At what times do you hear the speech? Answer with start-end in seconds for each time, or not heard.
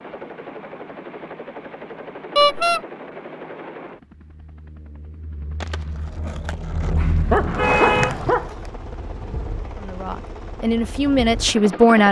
9.8-12.0.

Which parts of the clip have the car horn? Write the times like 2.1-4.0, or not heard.
2.4-2.8, 7.5-8.3.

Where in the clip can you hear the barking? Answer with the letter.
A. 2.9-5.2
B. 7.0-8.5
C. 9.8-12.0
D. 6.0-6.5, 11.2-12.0
B.